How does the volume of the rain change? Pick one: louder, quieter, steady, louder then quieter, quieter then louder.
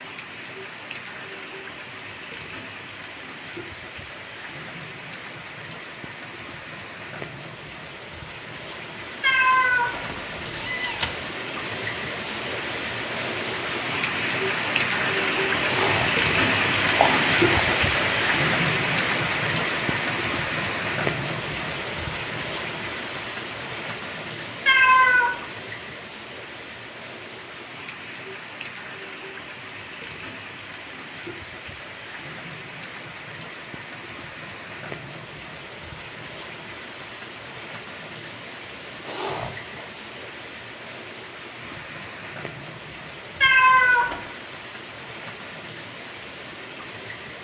louder then quieter.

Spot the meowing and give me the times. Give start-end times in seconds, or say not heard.
9.2-11.1, 24.6-25.4, 43.4-44.1.